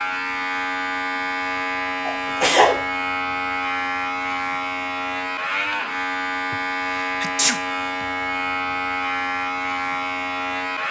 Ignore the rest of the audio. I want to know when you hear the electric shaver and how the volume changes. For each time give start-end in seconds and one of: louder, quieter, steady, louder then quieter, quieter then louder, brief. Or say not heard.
0.0-10.8 steady.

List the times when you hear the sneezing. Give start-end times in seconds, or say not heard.
2.0-2.9, 6.5-8.1.